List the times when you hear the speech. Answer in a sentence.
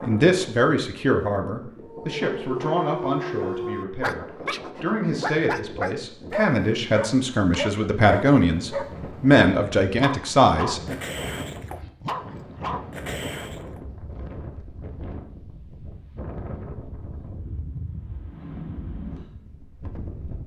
You can hear the speech from 0.0 to 10.9 s.